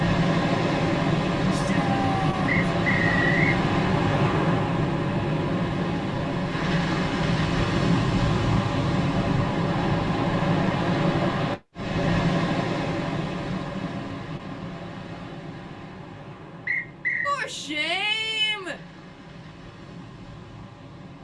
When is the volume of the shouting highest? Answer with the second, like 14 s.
18 s.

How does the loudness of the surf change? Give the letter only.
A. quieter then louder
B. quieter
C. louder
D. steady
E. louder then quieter
B.